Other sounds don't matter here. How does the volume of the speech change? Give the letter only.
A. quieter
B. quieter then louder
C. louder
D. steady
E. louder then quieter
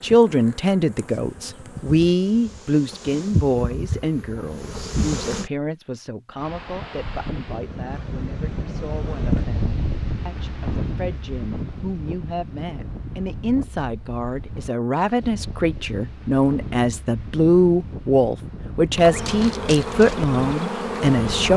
B.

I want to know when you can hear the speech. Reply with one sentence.
You can hear the speech from 0.0 to 21.5 s.